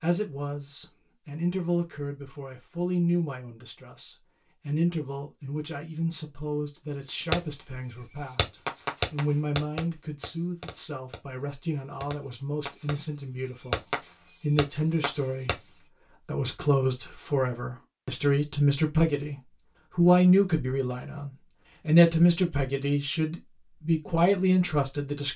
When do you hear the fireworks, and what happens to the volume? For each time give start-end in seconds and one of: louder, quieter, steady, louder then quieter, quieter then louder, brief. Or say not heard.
7.2-15.9 quieter then louder.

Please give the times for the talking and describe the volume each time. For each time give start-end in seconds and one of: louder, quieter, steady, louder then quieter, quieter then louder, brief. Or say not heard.
0.0-25.3 louder.